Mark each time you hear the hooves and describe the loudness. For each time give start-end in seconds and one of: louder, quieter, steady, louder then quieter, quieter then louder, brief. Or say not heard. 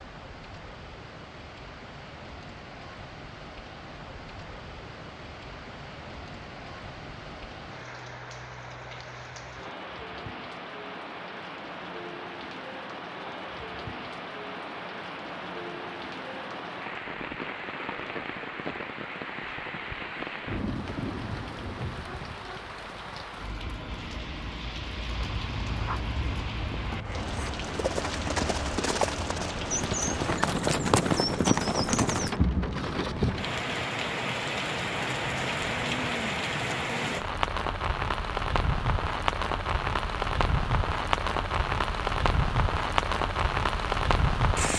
25.1-32.4 louder.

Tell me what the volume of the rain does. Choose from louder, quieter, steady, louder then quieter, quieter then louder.
louder.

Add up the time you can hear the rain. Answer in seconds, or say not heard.
45 s.